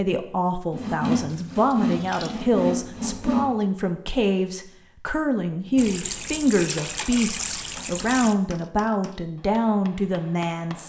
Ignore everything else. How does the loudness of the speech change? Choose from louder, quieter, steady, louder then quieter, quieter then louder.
steady.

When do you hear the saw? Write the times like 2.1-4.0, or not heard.
0.7-3.5.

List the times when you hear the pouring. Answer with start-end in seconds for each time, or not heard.
1.2-2.5, 5.8-8.3.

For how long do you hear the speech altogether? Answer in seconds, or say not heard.
11 s.